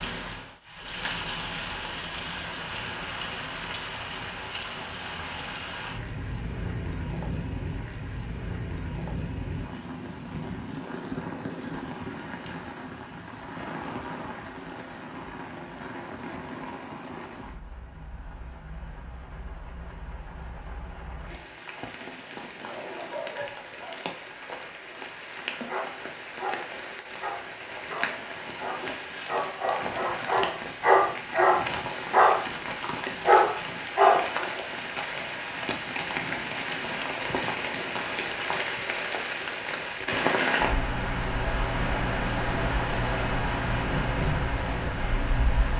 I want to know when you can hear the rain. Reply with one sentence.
You can hear the rain from 0.0 to 45.7 s.